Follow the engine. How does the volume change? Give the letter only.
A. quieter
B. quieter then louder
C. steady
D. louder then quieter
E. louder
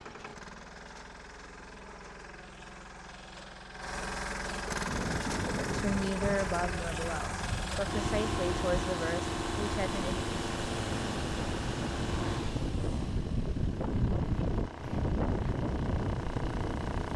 D.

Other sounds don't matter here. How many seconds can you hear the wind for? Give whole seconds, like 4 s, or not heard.
12 s.